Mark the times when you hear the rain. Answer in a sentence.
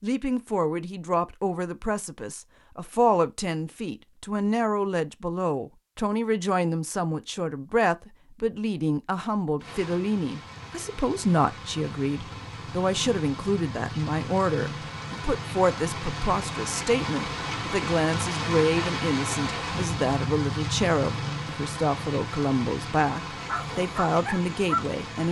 You can hear the rain from 9.6 to 25.2 s.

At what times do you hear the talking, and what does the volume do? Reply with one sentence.
You can hear the talking from 0.0 to 25.2 s, at a steady volume.